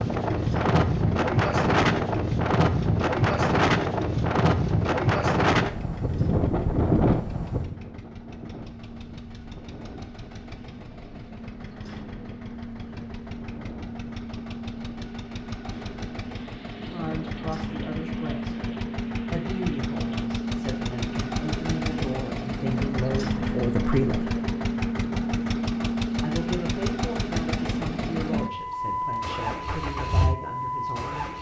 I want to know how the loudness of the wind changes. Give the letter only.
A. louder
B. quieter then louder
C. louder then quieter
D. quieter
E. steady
D.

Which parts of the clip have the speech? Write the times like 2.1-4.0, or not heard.
16.8-18.6, 19.3-24.4, 26.2-31.3.